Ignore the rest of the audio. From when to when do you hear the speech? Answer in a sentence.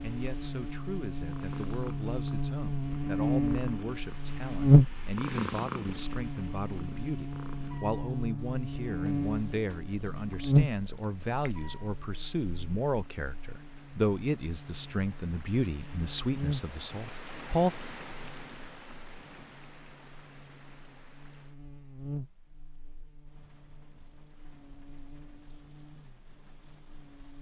The speech can be heard from 0.0 to 17.7 s.